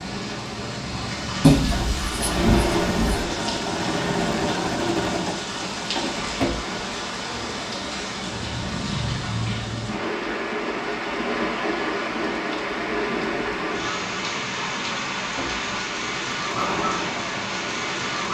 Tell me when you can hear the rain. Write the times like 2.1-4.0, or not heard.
0.0-18.3.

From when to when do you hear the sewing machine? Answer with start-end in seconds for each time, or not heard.
1.7-6.8, 13.1-18.3.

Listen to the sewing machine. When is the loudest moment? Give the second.
3 s.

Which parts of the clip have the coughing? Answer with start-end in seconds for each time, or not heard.
not heard.